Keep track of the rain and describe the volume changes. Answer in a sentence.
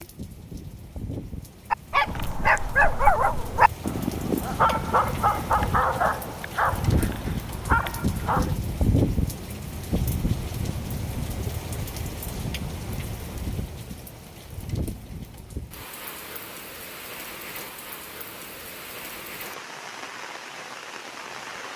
The volume of the rain goes up, then down.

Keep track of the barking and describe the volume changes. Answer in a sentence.
The loudness of the barking goes down.